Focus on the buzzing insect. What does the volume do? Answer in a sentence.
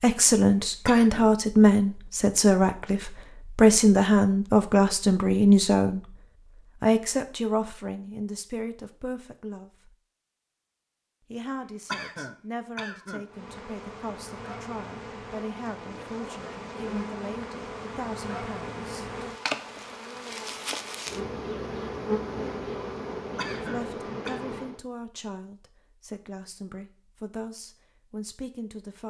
The loudness of the buzzing insect goes up.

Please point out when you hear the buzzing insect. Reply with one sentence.
You can hear the buzzing insect from 13.2 to 24.8 s.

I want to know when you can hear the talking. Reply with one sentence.
You can hear the talking from 0.0 to 6.2 s, from 6.8 to 9.9 s, from 11.3 to 19.2 s and from 23.6 to 29.0 s.